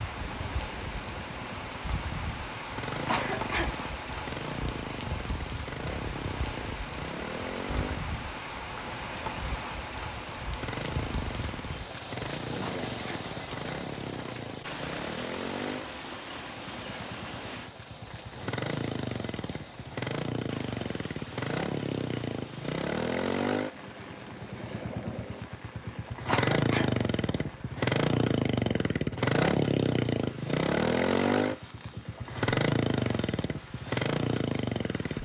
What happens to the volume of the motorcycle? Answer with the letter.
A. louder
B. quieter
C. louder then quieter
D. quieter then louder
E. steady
A.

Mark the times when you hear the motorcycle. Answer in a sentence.
You can hear the motorcycle from 0.0 to 35.2 s.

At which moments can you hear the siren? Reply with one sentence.
You can't hear the siren here.